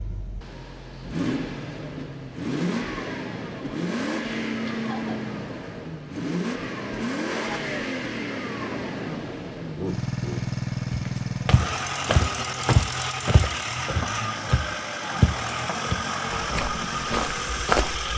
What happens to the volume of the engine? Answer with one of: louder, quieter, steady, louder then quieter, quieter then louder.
steady.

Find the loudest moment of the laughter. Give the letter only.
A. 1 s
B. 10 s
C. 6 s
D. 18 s
B.